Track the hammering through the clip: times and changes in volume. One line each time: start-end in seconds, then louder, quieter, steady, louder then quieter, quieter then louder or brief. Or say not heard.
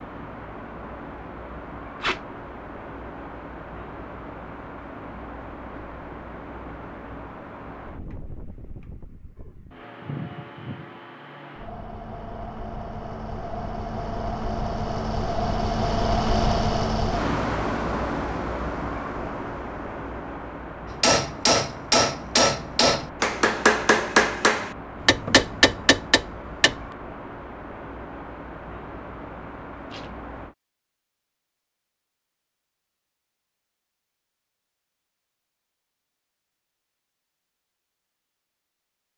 20.9-26.9 steady.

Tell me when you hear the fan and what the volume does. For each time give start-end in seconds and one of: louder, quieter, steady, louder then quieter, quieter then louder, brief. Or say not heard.
0.0-30.6 louder then quieter.